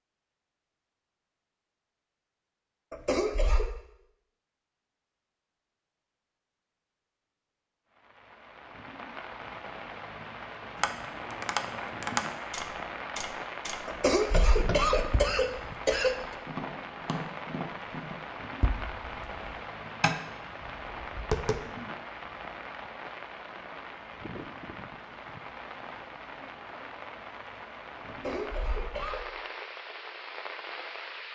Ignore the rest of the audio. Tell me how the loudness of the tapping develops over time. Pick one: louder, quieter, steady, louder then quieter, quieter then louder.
quieter then louder.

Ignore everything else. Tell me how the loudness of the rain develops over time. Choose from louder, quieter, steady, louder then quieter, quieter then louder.
steady.